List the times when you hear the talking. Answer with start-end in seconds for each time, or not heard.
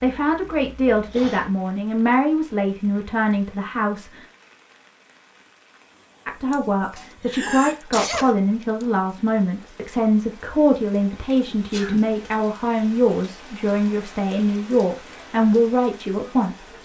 0.0-4.2, 6.2-16.7.